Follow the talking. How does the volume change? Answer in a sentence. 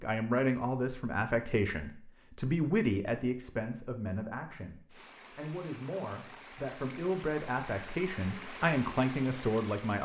The loudness of the talking goes down, then up.